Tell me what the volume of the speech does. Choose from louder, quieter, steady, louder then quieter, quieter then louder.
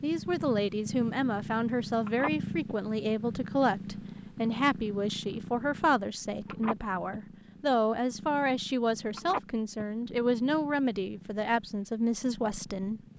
steady.